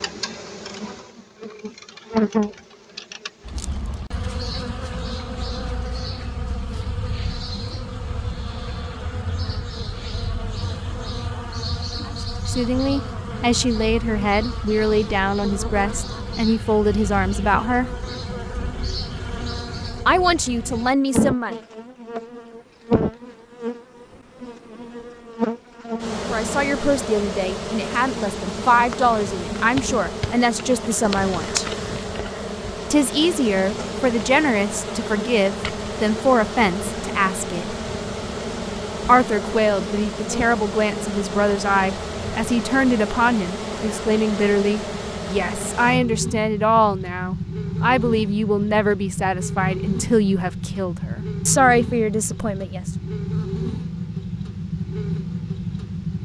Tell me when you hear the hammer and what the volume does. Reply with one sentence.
The hammer can't be heard in this clip.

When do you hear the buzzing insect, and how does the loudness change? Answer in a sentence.
The buzzing insect can be heard from 0.0 to 56.2 s, at a steady volume.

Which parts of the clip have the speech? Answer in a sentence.
You can hear the speech from 12.1 to 17.9 s, from 20.1 to 21.6 s, from 26.2 to 31.6 s, from 32.9 to 37.8 s and from 39.0 to 52.9 s.